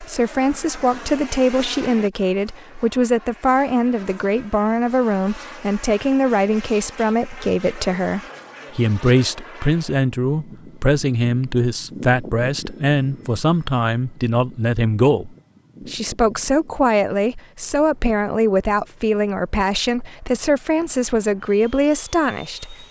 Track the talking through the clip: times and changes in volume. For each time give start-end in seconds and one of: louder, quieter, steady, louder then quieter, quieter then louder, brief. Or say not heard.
0.0-22.8 steady.